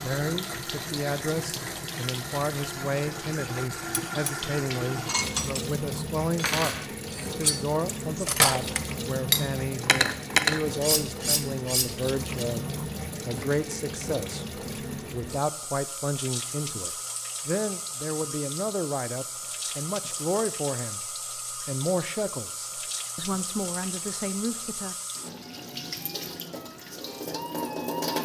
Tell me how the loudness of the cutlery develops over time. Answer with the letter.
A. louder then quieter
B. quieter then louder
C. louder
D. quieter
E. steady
C.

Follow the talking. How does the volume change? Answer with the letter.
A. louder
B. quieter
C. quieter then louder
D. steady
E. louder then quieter
D.